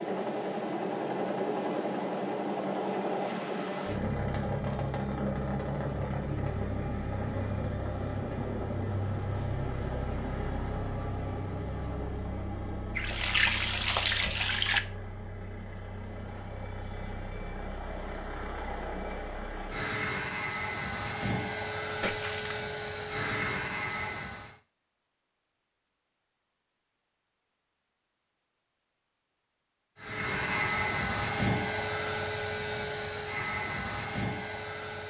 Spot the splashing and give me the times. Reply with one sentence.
You can hear the splashing from 12.9 to 14.8 s and from 22.0 to 22.6 s.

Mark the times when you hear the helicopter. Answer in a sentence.
The helicopter can be heard from 0.0 to 24.6 s and from 29.9 to 35.0 s.